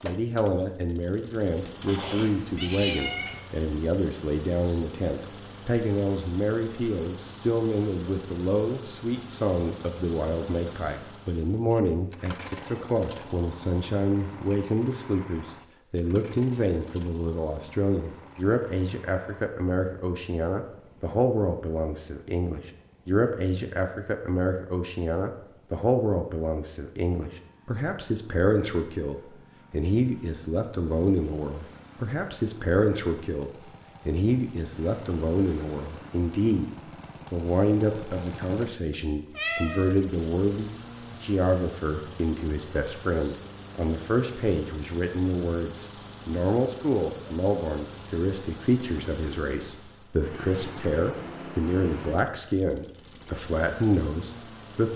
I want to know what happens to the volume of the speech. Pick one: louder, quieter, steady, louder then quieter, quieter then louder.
steady.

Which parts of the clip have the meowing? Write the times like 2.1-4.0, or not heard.
1.8-3.4, 39.4-40.0.